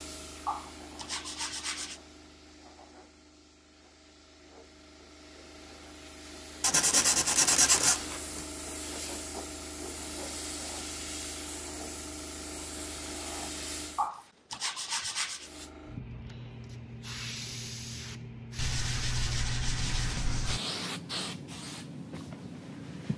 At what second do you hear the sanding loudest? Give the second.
8 s.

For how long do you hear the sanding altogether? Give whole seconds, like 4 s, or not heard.
7 s.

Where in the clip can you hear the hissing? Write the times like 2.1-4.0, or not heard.
0.0-14.1, 15.3-23.1.